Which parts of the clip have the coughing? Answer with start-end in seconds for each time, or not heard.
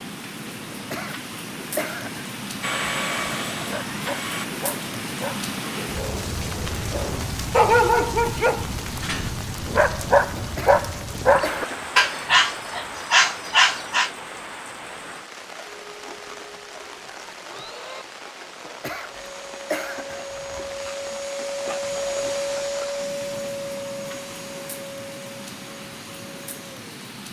0.7-2.3, 10.3-11.9, 18.6-20.2.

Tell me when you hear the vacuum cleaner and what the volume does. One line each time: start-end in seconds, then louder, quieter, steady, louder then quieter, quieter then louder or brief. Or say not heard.
2.6-4.5 brief
15.7-27.1 louder then quieter.